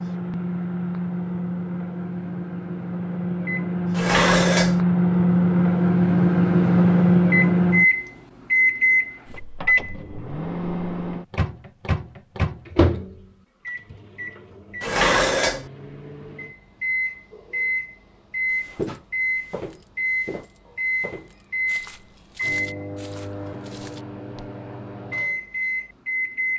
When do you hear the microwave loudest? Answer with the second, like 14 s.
7 s.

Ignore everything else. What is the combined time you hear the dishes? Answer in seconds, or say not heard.
2 s.